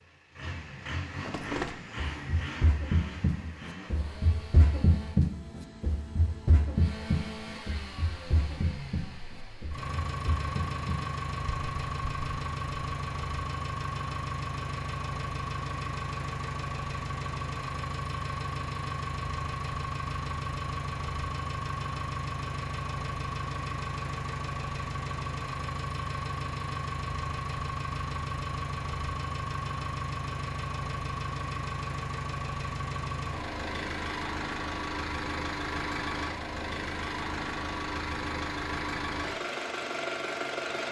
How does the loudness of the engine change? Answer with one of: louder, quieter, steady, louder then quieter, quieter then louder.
louder.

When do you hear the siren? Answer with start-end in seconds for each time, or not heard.
not heard.